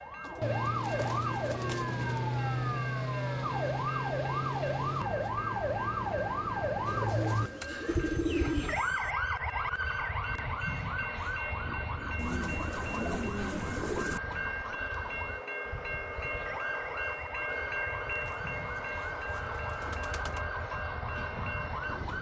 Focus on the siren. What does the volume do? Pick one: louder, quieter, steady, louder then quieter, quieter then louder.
quieter.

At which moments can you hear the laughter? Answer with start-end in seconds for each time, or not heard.
not heard.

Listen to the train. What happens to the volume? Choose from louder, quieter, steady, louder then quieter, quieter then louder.
louder.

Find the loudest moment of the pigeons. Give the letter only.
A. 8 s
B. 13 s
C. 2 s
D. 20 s
A.